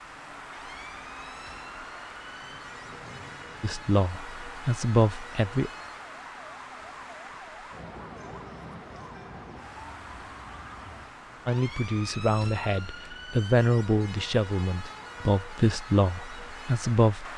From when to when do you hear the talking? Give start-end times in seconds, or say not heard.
3.6-5.7, 11.4-17.3.